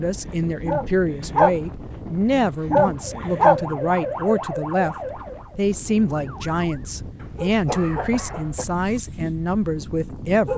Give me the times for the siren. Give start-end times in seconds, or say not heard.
2.9-6.9.